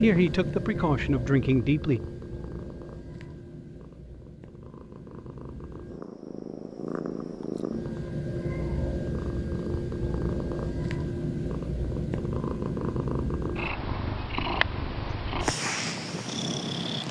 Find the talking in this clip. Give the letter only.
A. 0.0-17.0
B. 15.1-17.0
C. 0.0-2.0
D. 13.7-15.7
C.